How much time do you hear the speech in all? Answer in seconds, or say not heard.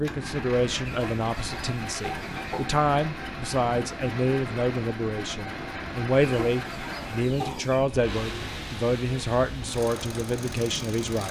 11 s.